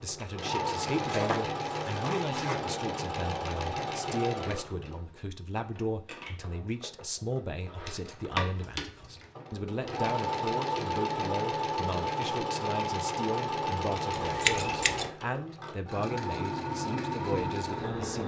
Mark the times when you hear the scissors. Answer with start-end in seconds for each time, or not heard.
0.9-2.6, 7.8-9.3, 14.2-15.1.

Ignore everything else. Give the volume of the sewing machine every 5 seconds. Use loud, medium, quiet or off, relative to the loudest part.
loud, quiet, loud, loud.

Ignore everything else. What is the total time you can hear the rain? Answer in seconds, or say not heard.
not heard.